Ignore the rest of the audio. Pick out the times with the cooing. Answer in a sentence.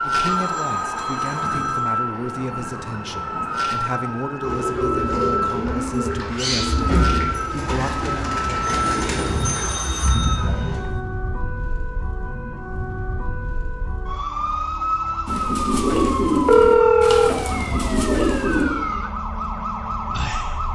You can hear the cooing from 4.4 to 10.8 s and from 15.2 to 18.6 s.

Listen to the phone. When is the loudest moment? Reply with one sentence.
The loudest moment of the phone is at 17 seconds.